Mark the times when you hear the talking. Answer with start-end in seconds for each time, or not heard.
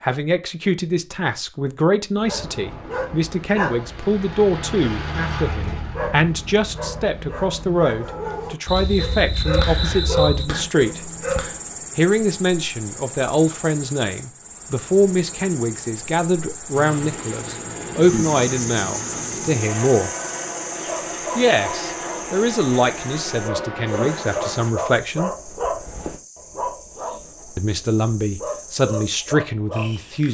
0.0-11.0, 11.9-20.1, 21.4-25.3, 27.6-30.2.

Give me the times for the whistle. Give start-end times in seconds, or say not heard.
not heard.